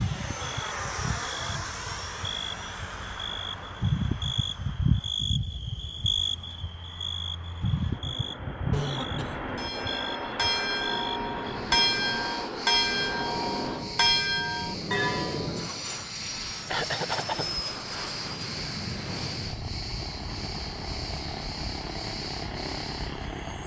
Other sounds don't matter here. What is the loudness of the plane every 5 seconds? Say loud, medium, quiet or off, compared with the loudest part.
loud, medium, loud, loud, loud.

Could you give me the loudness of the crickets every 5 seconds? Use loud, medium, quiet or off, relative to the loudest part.
loud, loud, medium, medium, medium.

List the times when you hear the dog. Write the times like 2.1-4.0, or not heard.
not heard.